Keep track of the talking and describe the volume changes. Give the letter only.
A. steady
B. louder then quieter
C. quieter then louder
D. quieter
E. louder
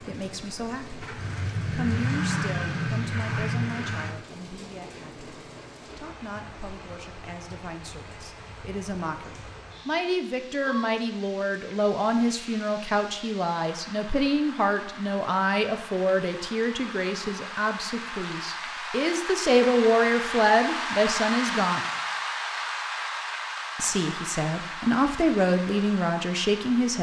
E.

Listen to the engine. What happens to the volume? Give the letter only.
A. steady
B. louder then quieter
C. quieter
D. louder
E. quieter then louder
D.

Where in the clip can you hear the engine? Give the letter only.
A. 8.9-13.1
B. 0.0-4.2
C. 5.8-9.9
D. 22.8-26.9
B.